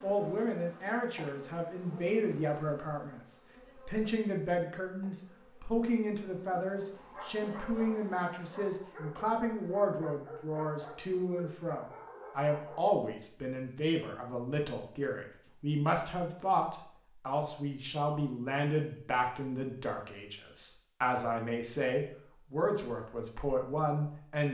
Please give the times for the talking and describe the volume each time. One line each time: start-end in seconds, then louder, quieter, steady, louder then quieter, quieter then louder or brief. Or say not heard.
0.0-24.4 steady.